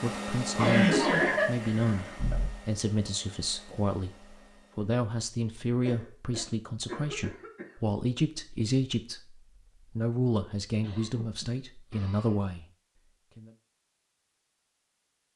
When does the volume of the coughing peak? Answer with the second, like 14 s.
1 s.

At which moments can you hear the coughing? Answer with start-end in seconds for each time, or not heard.
0.6-2.5, 5.8-7.8, 10.8-12.4.